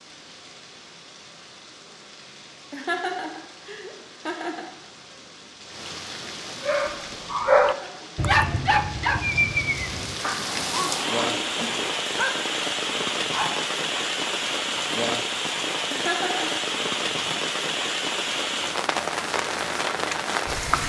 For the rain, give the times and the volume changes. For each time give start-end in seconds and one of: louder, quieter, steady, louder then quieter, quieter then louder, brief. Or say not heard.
0.0-20.8 louder.